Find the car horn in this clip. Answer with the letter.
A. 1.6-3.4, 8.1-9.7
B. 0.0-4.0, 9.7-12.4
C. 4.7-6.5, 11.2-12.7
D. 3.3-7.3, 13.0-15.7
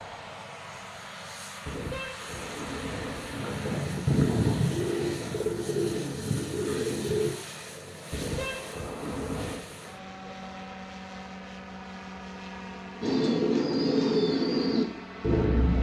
A.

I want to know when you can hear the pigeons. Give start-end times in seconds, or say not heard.
3.3-7.3, 13.0-15.7.